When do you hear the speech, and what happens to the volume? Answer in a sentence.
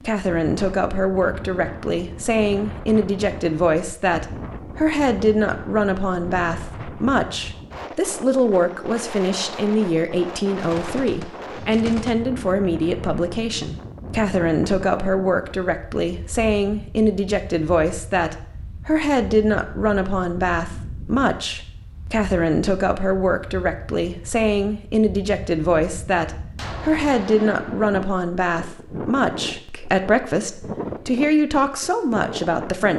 The speech can be heard from 0.0 to 32.9 s, at a steady volume.